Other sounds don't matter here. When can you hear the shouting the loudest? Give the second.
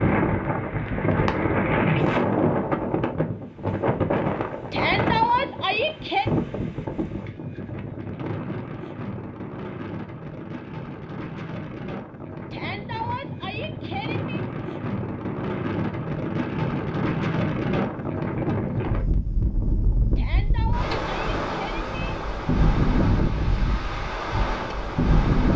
5 s.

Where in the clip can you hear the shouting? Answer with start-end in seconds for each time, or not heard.
4.7-6.2, 12.5-14.4, 20.1-21.9.